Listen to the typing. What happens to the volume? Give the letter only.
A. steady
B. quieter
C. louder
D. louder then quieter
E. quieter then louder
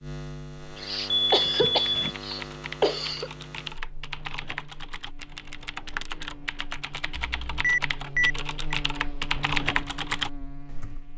C.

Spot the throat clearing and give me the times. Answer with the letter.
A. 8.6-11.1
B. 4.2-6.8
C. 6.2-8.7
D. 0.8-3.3
D.